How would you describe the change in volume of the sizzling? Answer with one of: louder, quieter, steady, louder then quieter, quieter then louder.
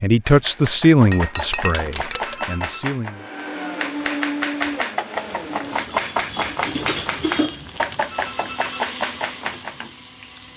louder then quieter.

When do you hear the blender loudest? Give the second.
4 s.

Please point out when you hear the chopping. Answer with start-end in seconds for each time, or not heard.
0.2-9.8.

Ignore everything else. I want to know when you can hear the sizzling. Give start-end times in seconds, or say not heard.
5.2-10.5.